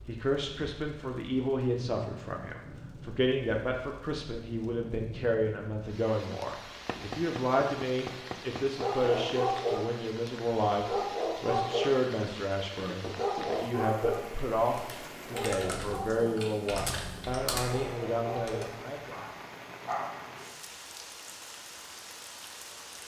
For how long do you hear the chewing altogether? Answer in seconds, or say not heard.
not heard.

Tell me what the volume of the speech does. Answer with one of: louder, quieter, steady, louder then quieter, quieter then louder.
steady.